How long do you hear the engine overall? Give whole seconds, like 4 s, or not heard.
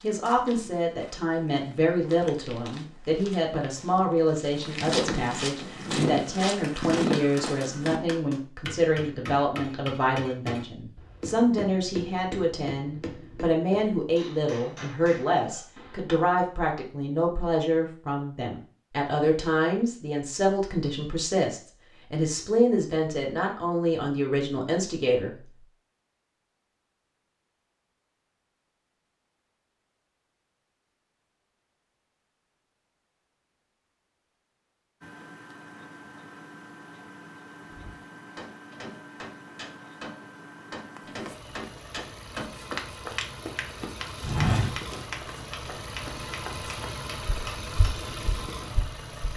14 s.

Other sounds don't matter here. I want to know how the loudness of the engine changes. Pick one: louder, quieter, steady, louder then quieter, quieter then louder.
louder.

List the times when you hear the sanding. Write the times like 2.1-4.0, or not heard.
not heard.